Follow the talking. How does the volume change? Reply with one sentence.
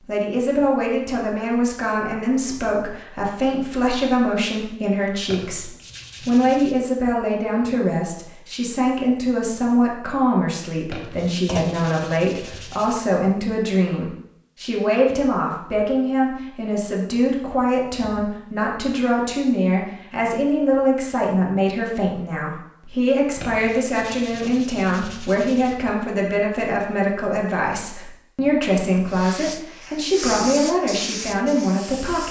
The volume of the talking stays about the same.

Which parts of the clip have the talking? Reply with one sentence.
The talking can be heard from 0.0 to 32.2 s.